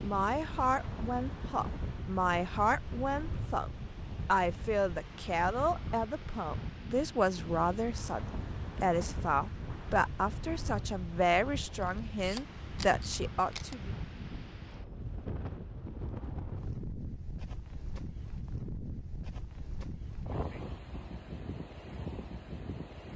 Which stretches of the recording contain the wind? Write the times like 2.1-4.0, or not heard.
0.0-23.1.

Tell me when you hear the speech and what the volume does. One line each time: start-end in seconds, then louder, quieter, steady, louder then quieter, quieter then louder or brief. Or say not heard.
0.0-13.9 steady.